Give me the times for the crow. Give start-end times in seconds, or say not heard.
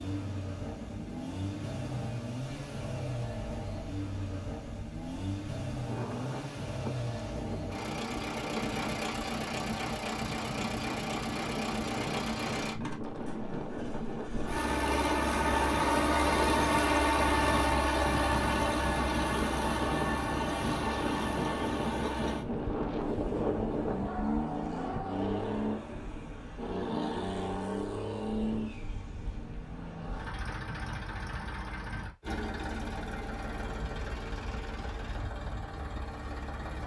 not heard.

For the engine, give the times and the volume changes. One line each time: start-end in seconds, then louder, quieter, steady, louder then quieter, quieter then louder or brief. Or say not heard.
0.0-36.8 louder then quieter.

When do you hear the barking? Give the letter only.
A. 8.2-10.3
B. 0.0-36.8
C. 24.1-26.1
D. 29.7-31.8
C.